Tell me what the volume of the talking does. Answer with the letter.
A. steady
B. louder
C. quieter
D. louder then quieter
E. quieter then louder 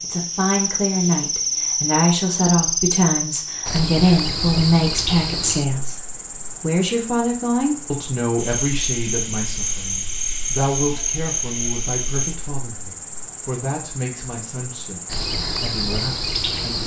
C.